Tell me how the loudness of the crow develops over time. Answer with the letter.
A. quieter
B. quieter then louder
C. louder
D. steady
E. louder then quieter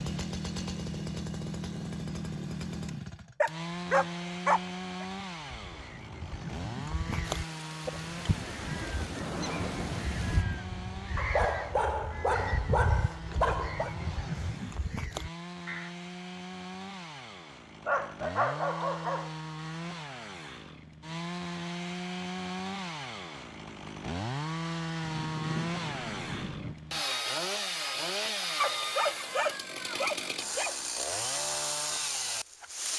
D.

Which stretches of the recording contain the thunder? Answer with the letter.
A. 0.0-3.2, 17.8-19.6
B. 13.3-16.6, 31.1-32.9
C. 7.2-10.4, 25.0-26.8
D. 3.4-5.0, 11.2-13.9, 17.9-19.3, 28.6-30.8
C.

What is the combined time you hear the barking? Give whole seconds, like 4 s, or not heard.
8 s.